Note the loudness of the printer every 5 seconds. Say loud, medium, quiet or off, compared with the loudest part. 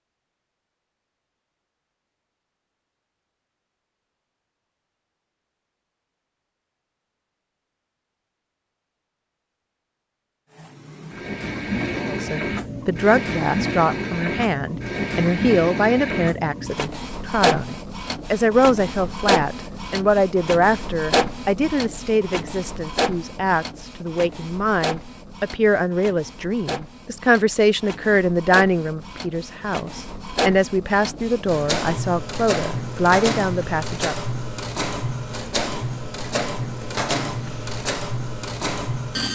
off, off, loud, loud, loud, medium, loud, loud.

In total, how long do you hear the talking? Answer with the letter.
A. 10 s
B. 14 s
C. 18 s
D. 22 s
D.